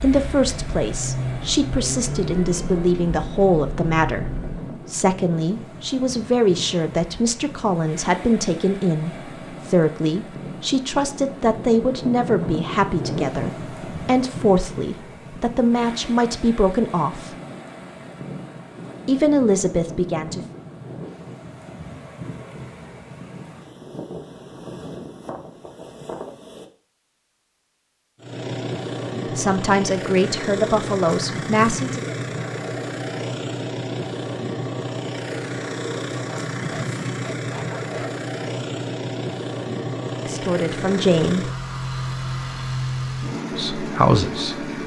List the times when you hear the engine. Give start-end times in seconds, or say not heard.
0.0-4.7, 28.2-44.8.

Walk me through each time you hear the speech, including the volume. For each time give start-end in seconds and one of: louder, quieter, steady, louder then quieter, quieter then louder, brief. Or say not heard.
0.0-17.3 steady
19.1-20.4 brief
29.3-32.1 brief
40.1-41.5 brief
43.5-44.6 brief.